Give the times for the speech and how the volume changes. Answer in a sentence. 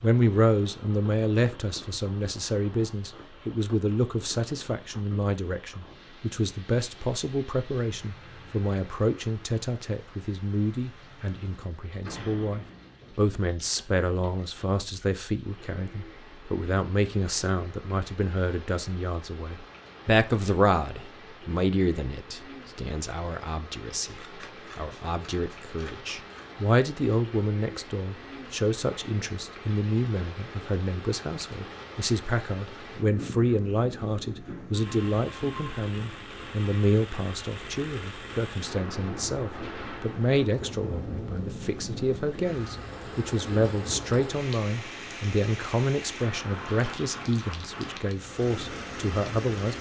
You can hear the speech from 0.0 to 49.7 s, at a steady volume.